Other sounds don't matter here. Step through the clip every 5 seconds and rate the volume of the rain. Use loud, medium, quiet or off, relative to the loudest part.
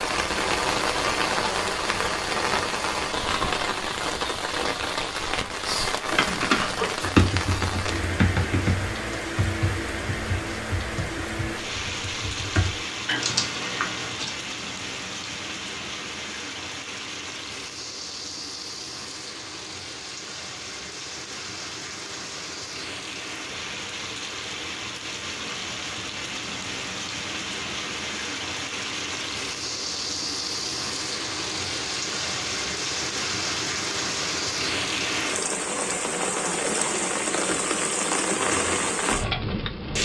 loud, loud, medium, medium, medium, medium, loud, loud.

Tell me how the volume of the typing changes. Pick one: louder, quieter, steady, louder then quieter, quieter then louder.
quieter then louder.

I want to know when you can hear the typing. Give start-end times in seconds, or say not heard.
6.2-14.3.